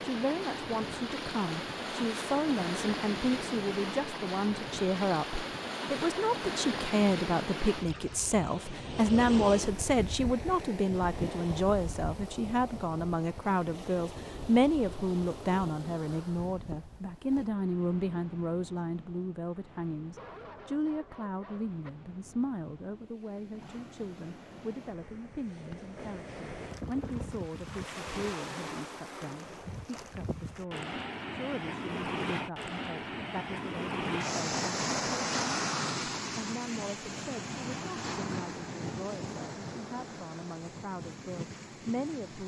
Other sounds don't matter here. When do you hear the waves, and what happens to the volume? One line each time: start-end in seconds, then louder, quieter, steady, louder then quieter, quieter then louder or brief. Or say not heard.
0.0-42.4 quieter then louder.